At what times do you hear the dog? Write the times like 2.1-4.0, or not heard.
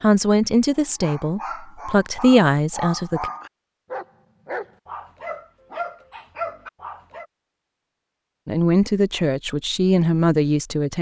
0.7-7.2.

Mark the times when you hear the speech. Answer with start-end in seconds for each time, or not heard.
0.0-3.3, 8.4-10.9.